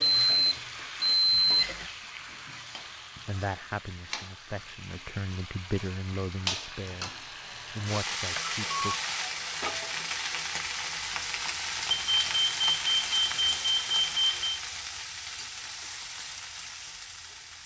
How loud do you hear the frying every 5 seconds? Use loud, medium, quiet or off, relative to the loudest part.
medium, loud, loud, medium.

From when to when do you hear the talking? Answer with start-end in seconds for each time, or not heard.
3.2-9.0.